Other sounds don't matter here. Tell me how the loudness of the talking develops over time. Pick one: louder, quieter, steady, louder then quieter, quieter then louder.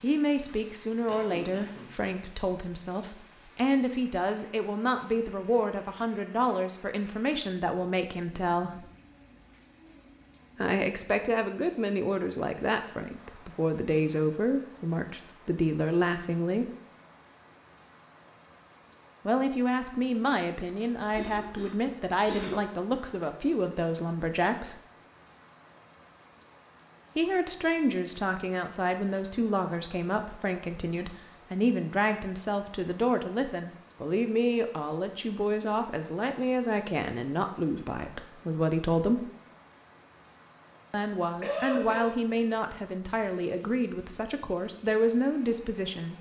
steady.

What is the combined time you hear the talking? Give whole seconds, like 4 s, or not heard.
38 s.